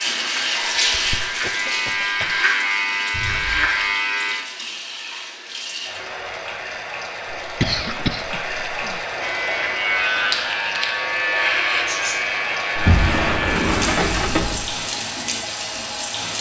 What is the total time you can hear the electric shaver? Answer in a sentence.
The electric shaver can be heard for 9 seconds in total.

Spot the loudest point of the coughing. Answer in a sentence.
The loudest moment of the coughing is at 8 seconds.